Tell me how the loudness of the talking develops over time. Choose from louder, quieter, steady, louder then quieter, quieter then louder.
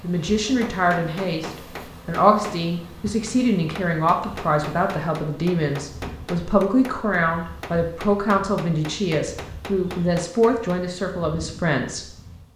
steady.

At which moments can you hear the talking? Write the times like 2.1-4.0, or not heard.
0.0-12.1.